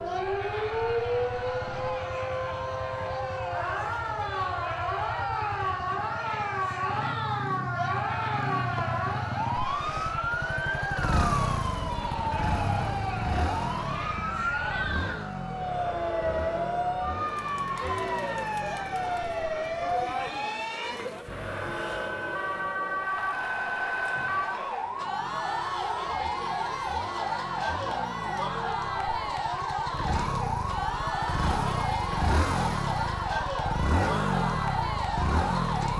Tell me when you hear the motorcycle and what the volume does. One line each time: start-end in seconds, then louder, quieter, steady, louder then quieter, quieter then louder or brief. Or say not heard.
0.0-20.4 louder then quieter
24.9-35.9 louder.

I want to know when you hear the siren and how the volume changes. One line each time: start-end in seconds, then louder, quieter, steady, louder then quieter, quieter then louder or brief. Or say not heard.
0.0-35.9 steady.